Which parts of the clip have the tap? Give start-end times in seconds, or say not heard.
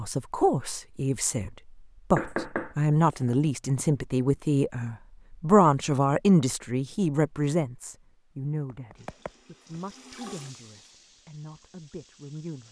8.9-12.6.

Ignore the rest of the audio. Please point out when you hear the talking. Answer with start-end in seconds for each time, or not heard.
0.0-12.6.